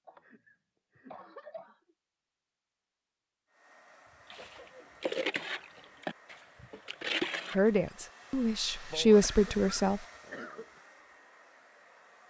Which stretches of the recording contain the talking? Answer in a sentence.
You can hear the talking from 7.5 to 10.0 s.